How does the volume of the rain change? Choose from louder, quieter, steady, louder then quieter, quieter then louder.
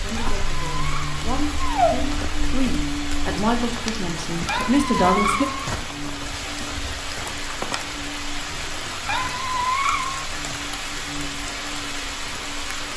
steady.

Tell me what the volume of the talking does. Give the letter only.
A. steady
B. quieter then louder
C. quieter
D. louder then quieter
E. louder
E.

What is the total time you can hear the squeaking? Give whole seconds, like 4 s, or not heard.
4 s.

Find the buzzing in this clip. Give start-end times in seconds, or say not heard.
0.2-12.9.